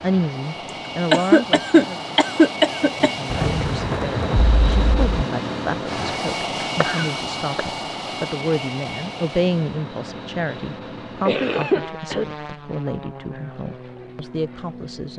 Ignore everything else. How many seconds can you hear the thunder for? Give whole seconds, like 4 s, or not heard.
2 s.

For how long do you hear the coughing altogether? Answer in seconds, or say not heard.
5 s.